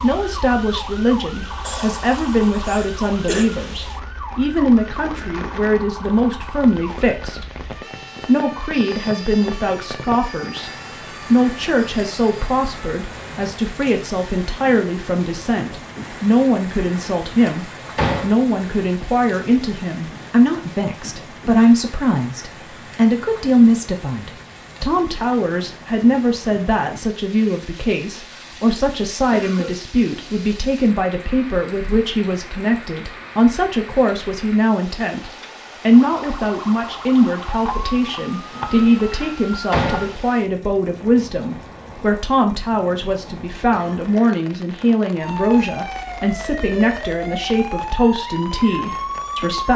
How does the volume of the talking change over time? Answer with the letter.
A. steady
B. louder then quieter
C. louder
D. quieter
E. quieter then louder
A.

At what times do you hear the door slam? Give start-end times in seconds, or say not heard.
16.8-18.4, 38.5-40.2.